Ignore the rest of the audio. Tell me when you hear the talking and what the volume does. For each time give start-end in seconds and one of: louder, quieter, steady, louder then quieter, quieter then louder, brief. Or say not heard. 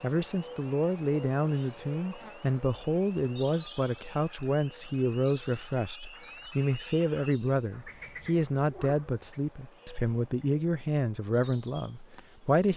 0.0-12.7 steady.